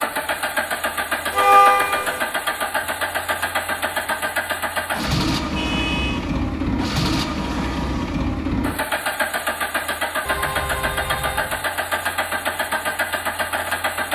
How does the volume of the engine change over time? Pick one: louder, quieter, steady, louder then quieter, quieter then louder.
steady.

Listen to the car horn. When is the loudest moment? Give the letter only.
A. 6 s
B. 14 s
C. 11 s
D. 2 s
D.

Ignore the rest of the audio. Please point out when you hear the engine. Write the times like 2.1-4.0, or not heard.
0.0-14.1.